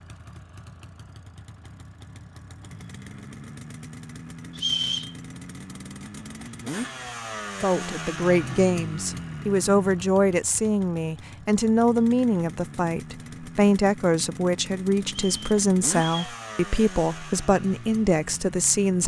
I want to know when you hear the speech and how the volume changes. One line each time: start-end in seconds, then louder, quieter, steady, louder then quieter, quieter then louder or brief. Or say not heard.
7.6-19.0 steady.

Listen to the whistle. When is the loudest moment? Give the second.
5 s.